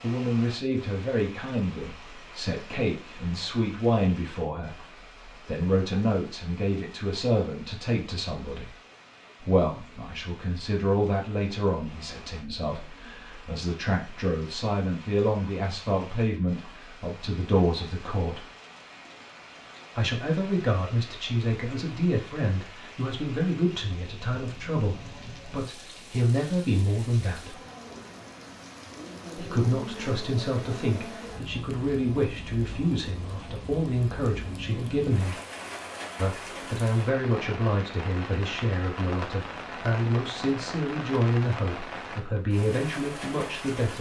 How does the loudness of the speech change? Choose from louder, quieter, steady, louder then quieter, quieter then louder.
steady.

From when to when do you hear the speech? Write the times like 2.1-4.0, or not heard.
0.0-8.8, 9.4-18.4, 19.9-27.6, 29.4-35.4, 36.1-43.9.